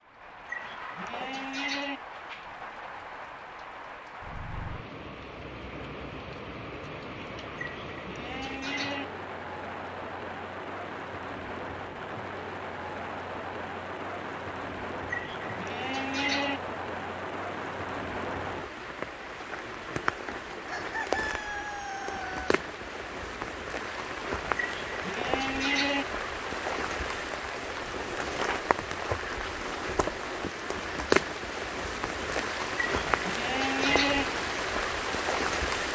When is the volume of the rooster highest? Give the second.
21 s.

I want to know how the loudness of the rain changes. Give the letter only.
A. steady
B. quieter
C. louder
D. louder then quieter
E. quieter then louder
C.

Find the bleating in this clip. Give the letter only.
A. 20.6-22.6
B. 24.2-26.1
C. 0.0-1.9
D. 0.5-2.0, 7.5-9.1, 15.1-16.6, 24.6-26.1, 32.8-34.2
D.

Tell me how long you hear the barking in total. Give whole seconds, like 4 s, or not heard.
not heard.